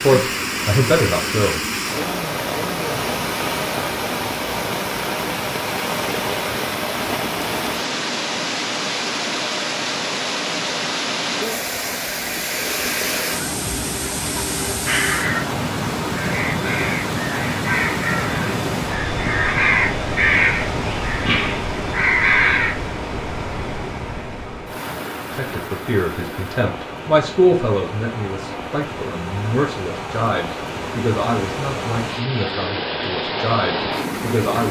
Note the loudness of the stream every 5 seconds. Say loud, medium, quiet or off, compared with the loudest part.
loud, loud, loud, loud, loud, medium, loud.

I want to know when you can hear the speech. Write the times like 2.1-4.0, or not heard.
0.0-1.6, 25.3-34.6.